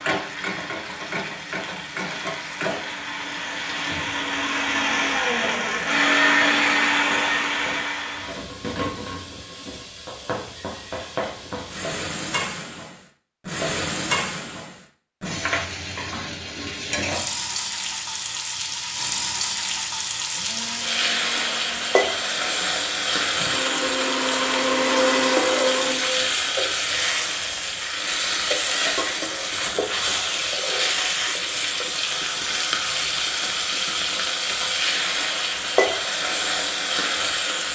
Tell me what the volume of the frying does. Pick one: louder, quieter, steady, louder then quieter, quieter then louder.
louder.